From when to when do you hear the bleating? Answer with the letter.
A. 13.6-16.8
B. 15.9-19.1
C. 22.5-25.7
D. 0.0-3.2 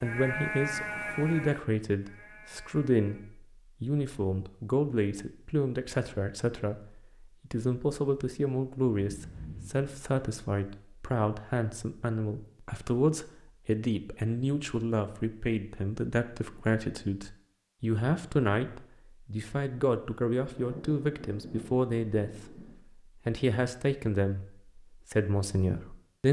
D.